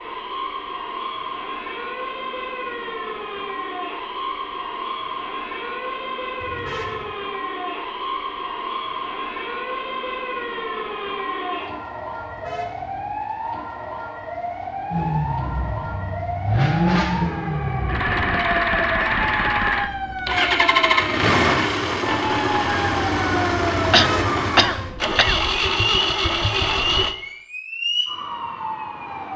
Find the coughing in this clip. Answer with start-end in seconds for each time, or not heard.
23.9-25.4.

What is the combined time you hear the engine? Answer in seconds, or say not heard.
12 s.